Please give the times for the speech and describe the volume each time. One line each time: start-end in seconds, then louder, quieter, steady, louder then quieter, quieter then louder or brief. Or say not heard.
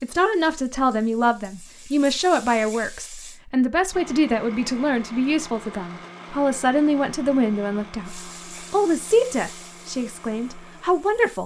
0.0-11.4 steady.